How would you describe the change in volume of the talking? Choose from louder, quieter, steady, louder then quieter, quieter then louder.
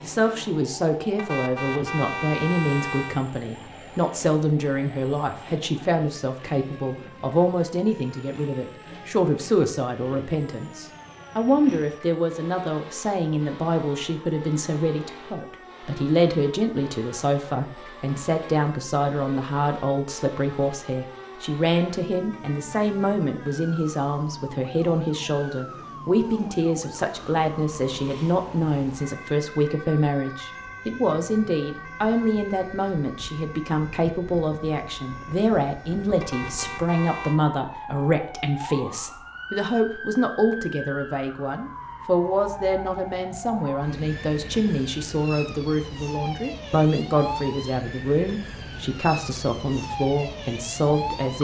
steady.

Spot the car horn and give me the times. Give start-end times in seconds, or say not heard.
1.1-3.2, 22.3-22.9, 36.2-37.4.